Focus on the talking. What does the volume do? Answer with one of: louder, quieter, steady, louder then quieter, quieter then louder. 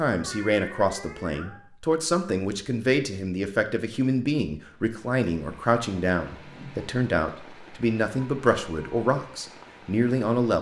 steady.